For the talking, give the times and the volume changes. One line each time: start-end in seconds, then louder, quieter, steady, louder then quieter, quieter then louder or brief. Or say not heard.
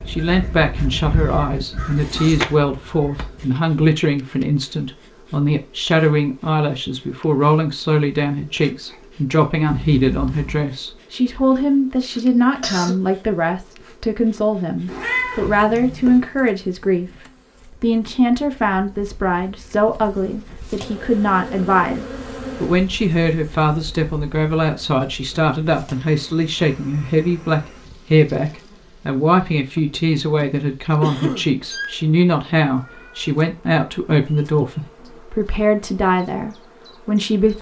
0.1-37.5 steady.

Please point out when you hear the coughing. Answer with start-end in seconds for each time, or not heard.
12.2-13.0, 31.0-31.5.